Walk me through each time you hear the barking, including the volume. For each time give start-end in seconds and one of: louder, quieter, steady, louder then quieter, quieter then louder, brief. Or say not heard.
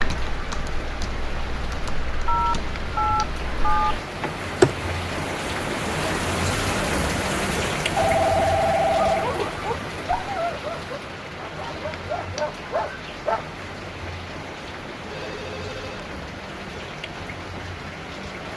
9.1-13.4 quieter then louder.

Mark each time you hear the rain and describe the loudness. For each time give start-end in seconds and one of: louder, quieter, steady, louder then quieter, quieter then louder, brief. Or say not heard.
0.0-18.5 louder then quieter.